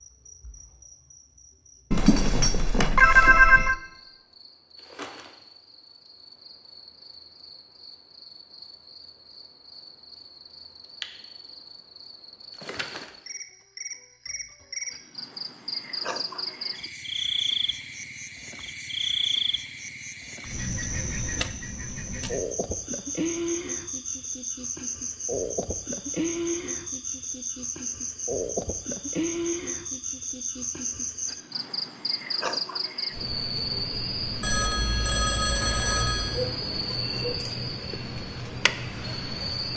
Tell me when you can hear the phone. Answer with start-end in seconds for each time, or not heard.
1.9-3.8, 34.4-36.4.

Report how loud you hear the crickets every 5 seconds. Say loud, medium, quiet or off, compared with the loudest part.
quiet, quiet, medium, loud, loud, loud, loud, loud.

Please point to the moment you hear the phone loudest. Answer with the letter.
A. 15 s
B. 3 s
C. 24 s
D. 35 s
B.